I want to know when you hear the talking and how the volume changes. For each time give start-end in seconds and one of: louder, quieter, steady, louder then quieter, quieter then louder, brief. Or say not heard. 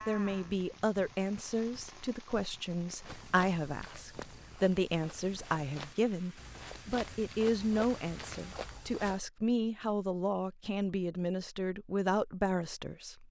0.1-13.2 steady.